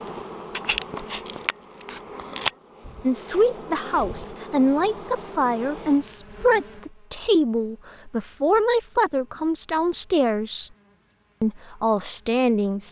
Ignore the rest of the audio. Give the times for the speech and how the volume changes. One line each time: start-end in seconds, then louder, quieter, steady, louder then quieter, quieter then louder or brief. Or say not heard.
3.0-10.7 steady
11.4-12.8 brief.